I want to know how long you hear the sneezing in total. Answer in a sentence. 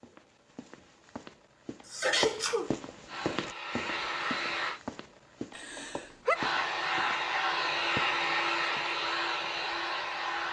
The sneezing can be heard for 2 seconds in total.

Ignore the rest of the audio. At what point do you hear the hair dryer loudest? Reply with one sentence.
The loudest moment of the hair dryer is at 8 seconds.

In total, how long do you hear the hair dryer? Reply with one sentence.
The hair dryer can be heard for 6 seconds in total.